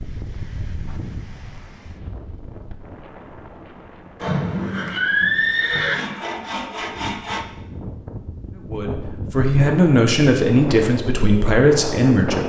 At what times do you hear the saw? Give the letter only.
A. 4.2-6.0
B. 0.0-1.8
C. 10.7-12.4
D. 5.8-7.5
D.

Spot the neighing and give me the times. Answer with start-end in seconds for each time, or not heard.
4.2-6.0.